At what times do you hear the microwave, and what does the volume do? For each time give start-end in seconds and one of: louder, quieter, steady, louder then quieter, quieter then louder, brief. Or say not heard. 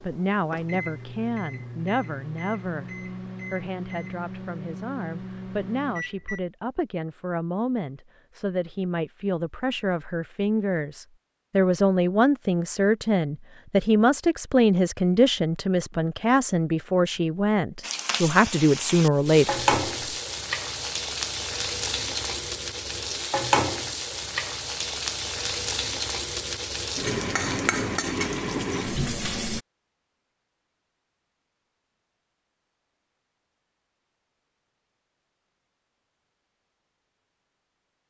0.0-6.4 steady.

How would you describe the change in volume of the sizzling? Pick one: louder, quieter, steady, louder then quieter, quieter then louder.
steady.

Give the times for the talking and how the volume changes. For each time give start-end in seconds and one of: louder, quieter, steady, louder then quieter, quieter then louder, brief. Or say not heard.
0.0-19.6 louder.